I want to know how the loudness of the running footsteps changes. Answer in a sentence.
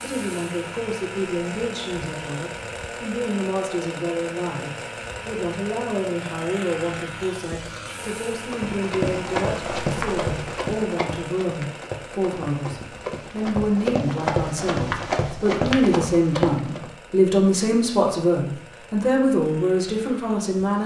The loudness of the running footsteps goes down, then up.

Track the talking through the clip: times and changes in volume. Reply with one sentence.
The talking can be heard from 0.0 to 20.8 s, getting louder.